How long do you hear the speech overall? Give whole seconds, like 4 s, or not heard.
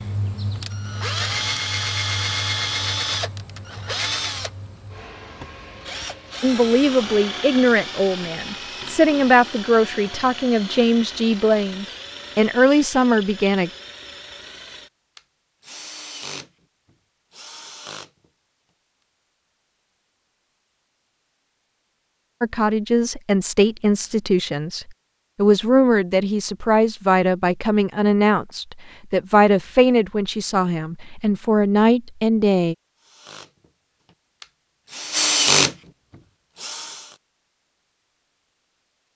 18 s.